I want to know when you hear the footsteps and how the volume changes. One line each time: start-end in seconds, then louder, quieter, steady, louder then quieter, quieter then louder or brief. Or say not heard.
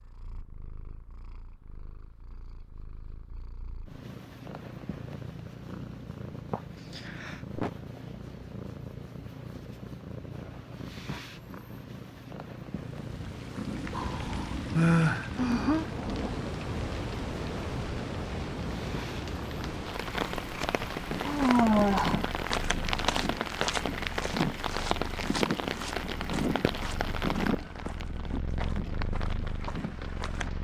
21.1-30.5 quieter.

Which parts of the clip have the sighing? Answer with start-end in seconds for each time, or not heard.
6.5-7.7, 13.9-15.8, 21.2-22.2.